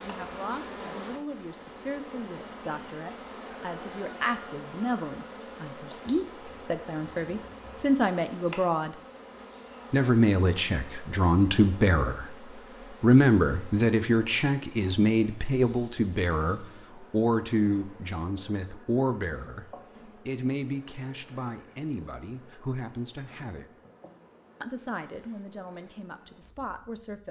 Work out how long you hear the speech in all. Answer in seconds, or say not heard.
25 s.